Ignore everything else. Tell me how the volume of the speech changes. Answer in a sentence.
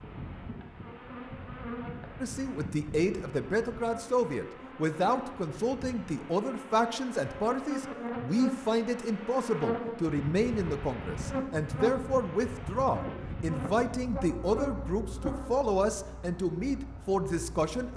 The volume of the speech stays about the same.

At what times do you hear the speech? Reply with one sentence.
You can hear the speech from 2.2 to 17.9 s.